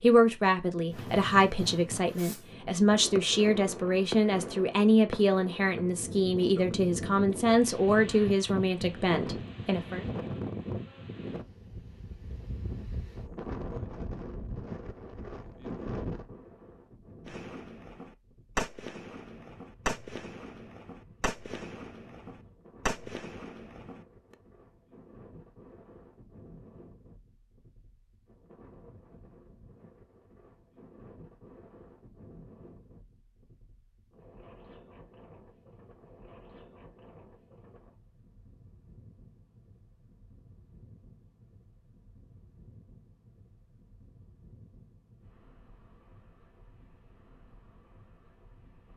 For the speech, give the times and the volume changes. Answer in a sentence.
You can hear the speech from 0.0 to 10.1 s, at a steady volume.